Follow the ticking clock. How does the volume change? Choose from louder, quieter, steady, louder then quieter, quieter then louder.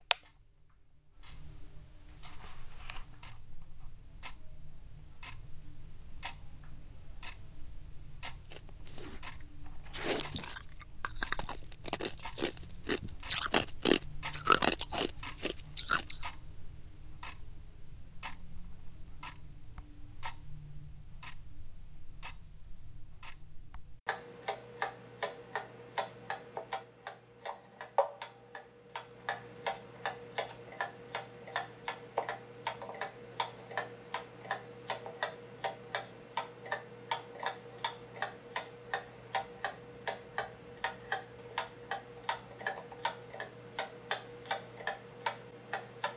louder.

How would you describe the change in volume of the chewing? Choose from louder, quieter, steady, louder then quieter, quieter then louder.
louder.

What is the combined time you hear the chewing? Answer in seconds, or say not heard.
8 s.